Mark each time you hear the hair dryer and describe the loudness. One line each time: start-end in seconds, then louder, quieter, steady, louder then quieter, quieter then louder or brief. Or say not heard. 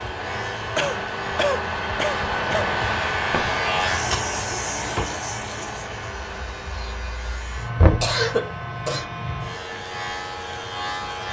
0.0-11.2 quieter.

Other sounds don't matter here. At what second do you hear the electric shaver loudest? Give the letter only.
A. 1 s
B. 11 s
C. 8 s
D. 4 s
D.